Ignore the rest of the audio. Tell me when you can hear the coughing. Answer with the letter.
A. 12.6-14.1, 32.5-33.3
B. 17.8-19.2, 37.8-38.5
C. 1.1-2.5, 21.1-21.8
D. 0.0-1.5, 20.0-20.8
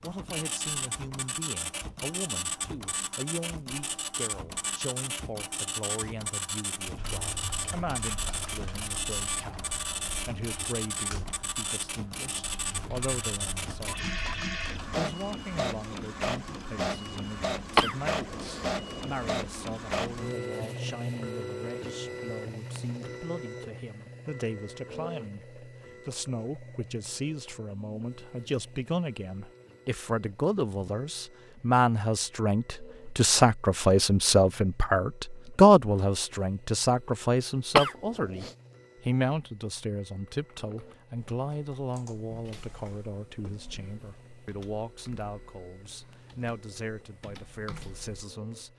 B.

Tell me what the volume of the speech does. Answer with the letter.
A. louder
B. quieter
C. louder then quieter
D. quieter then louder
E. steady
C.